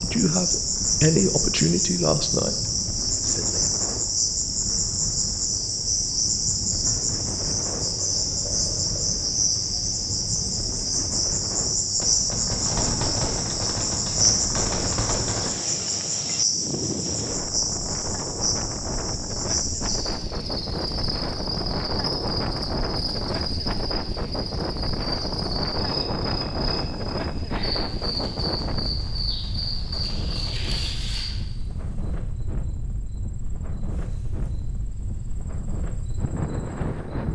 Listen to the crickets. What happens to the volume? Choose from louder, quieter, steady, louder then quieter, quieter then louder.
quieter.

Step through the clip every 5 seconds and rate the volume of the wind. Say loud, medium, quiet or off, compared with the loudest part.
medium, medium, medium, loud, loud, loud, medium, loud.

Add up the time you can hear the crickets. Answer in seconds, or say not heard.
37 s.